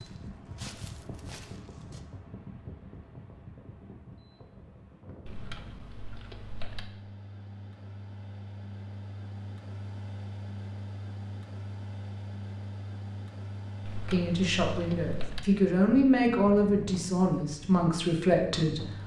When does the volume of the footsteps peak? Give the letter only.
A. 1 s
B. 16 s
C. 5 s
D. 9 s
A.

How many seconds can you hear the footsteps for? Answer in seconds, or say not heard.
2 s.